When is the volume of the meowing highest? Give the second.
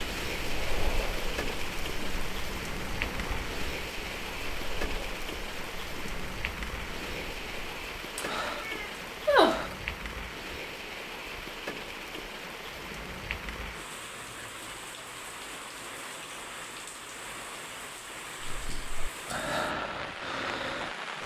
9 s.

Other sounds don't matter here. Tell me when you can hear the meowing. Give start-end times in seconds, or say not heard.
8.2-9.8.